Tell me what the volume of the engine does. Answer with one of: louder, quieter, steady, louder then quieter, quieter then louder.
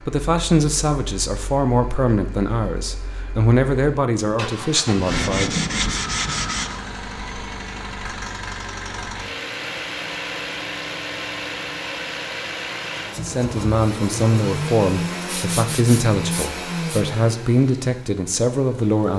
louder.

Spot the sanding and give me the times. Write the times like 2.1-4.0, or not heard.
5.0-6.8, 15.2-17.1.